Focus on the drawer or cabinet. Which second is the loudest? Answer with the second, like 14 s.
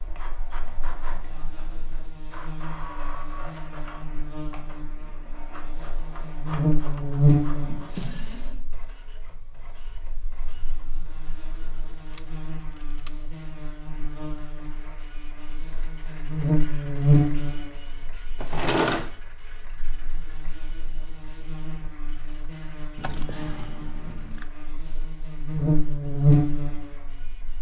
19 s.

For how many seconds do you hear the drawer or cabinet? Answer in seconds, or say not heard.
2 s.